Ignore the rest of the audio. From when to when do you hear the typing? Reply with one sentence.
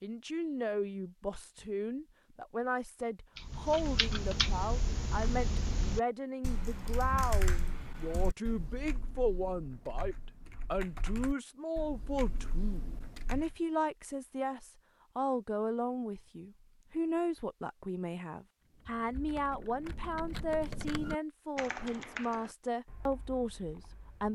The typing can be heard from 3.4 to 13.6 s and from 18.6 to 24.2 s.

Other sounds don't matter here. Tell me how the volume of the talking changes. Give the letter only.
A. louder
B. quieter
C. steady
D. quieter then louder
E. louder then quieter
C.